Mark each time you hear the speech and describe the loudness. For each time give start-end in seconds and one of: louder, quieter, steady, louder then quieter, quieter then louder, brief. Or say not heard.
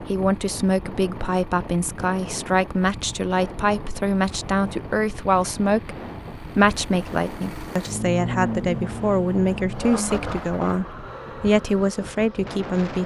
0.0-13.0 steady.